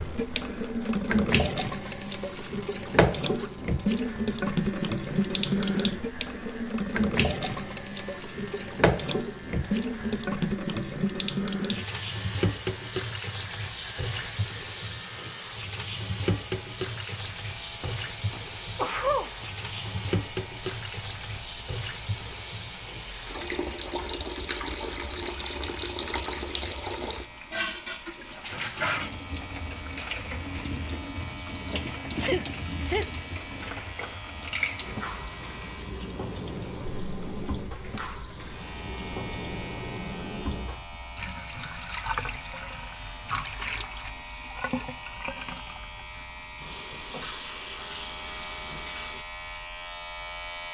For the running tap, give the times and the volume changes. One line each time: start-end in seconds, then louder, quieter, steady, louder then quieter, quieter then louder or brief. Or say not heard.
0.0-49.2 quieter.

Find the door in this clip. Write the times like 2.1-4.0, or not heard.
not heard.